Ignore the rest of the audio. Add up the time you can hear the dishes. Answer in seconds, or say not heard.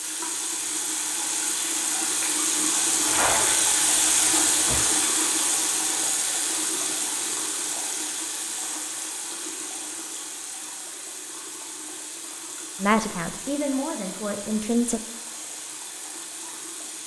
2 s.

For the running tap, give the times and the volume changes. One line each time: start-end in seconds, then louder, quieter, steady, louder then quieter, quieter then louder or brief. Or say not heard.
0.0-17.0 quieter.